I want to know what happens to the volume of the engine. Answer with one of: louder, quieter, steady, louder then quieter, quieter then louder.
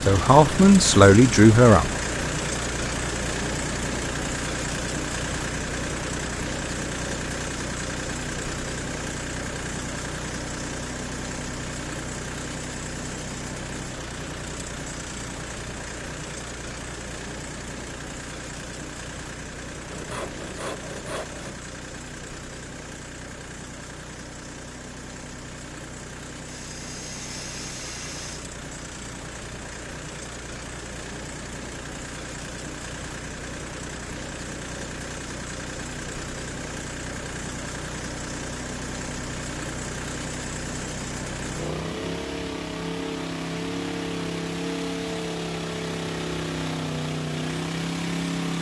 quieter then louder.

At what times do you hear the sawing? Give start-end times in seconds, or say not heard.
19.9-21.6, 26.4-28.5.